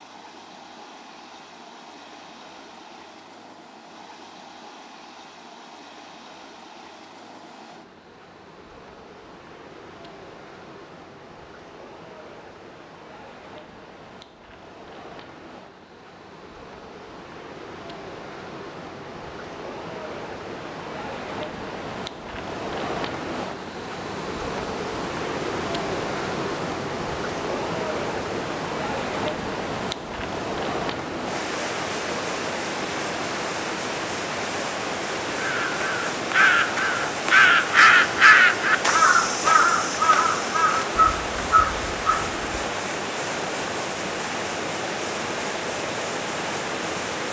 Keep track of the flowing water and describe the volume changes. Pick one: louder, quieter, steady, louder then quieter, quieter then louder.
louder.